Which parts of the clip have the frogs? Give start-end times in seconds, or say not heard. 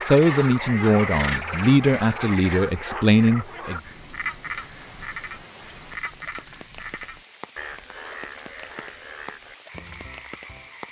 0.0-10.8.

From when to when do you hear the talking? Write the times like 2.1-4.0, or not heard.
0.0-3.8.